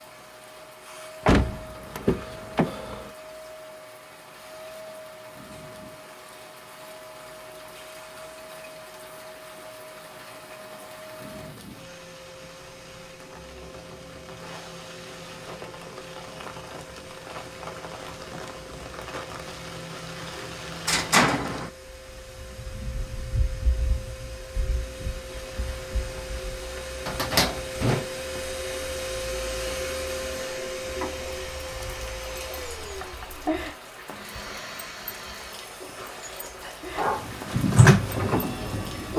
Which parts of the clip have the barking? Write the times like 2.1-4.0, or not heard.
37.0-39.1.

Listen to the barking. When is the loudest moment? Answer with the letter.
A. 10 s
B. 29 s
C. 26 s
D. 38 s
D.